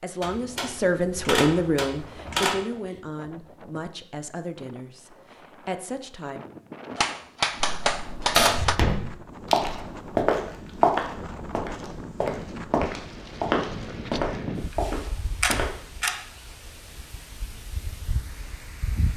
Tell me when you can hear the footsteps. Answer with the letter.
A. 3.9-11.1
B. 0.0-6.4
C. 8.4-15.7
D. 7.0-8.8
C.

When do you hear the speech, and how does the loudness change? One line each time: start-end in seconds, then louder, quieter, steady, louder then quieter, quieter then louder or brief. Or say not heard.
0.0-6.4 quieter.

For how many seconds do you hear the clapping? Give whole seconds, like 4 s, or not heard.
2 s.